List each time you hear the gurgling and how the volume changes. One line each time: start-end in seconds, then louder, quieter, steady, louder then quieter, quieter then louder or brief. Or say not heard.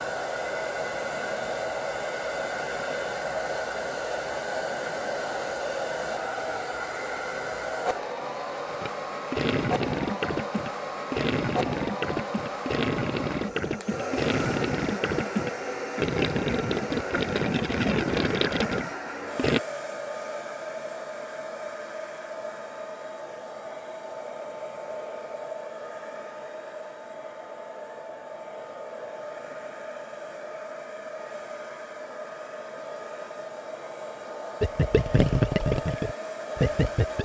8.7-19.6 steady
34.6-37.2 brief.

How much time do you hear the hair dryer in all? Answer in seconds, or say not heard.
37 s.